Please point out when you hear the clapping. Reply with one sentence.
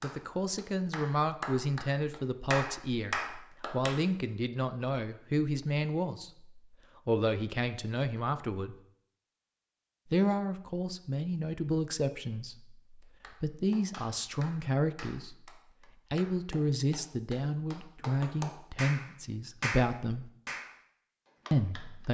You can hear the clapping from 0.0 to 4.0 s and from 13.0 to 22.0 s.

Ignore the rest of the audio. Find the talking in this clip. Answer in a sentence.
You can hear the talking from 0.0 to 8.8 s, from 10.1 to 15.5 s, from 16.1 to 20.3 s and from 21.5 to 22.0 s.